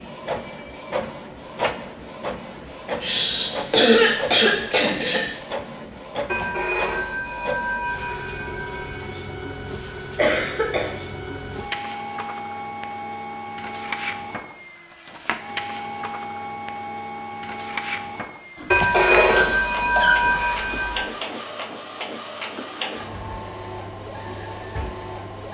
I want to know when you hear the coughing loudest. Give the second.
4 s.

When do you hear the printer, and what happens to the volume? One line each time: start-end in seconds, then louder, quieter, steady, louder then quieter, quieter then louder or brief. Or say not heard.
0.0-25.4 steady.